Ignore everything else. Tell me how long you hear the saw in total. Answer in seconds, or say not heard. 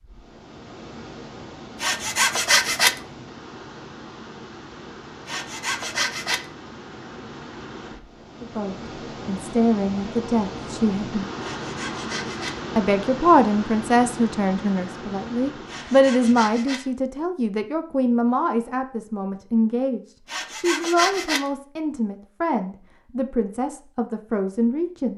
6 s.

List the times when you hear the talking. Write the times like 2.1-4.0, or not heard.
8.4-11.2, 12.8-25.1.